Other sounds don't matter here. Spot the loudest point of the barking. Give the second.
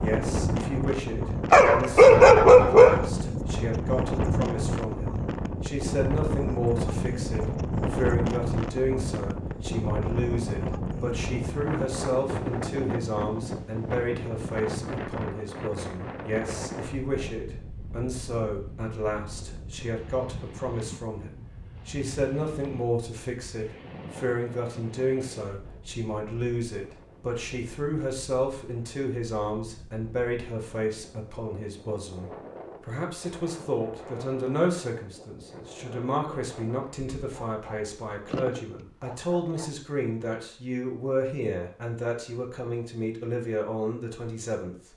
2 s.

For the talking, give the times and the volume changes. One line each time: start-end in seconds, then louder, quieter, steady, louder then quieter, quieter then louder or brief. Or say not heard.
0.0-44.9 steady.